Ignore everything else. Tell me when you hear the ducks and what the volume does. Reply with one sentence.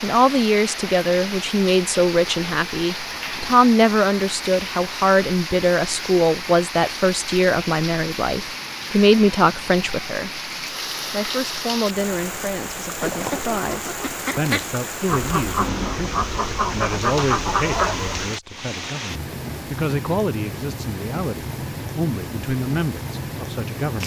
You can hear the ducks from 13.0 to 18.4 s, getting louder.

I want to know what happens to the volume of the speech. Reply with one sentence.
The volume of the speech goes down.